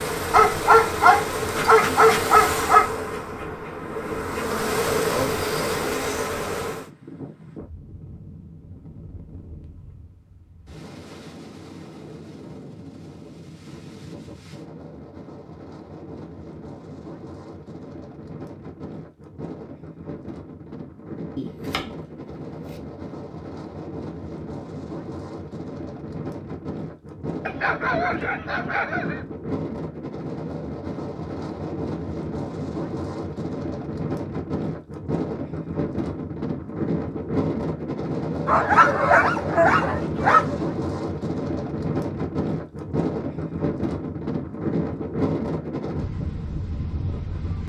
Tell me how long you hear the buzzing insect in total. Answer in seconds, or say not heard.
7 s.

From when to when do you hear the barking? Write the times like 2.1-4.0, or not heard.
0.3-2.9, 27.4-29.2, 38.5-40.6.